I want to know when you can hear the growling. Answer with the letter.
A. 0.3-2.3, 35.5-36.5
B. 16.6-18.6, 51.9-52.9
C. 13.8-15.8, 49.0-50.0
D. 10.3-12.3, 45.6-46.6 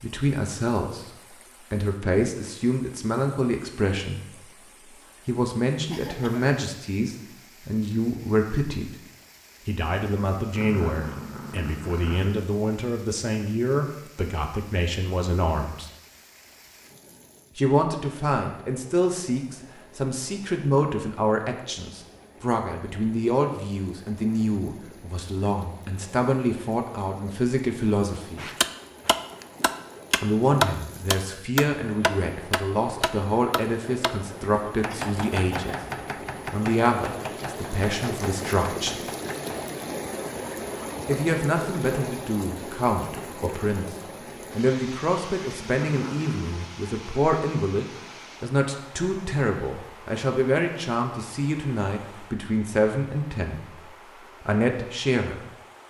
D.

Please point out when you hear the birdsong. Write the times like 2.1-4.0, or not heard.
not heard.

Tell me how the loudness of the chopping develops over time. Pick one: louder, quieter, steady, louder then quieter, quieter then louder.
quieter.